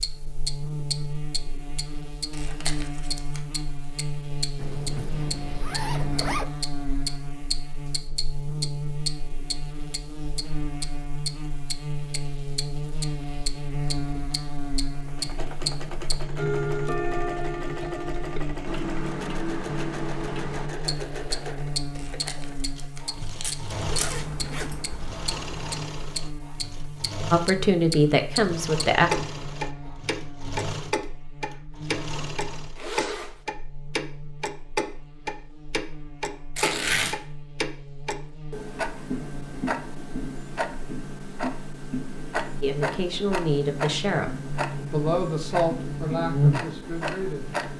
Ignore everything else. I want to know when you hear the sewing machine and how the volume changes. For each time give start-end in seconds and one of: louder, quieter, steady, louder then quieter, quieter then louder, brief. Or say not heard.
14.9-32.9 steady.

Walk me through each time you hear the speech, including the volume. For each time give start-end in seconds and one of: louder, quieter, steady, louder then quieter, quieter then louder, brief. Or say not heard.
27.3-29.1 brief
42.6-47.5 quieter.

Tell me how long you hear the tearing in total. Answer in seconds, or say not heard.
4 s.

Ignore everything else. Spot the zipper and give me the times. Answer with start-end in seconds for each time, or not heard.
4.5-6.5, 23.7-25.7, 32.8-33.4.